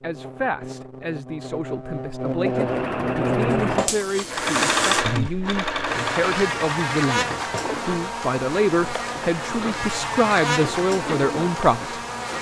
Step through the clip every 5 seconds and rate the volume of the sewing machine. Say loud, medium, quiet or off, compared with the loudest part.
loud, medium, medium.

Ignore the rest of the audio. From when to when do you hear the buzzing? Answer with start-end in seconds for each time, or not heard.
0.0-12.3.